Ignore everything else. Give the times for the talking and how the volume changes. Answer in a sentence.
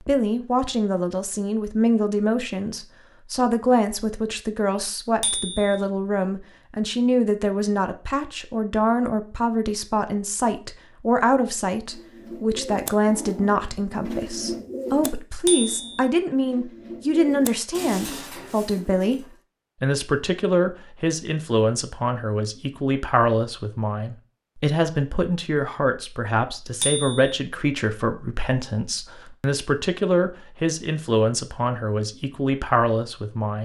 You can hear the talking from 0.1 to 33.6 s, at a steady volume.